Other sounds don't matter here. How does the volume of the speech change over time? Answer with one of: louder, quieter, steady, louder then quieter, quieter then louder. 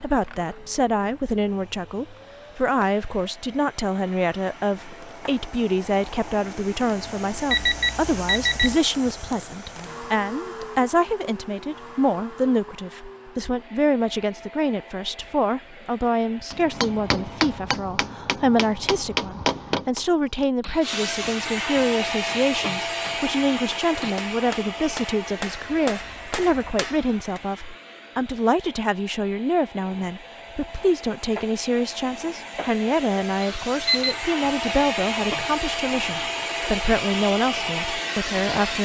steady.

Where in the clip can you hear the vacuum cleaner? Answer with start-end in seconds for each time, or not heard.
0.0-17.6, 20.8-38.8.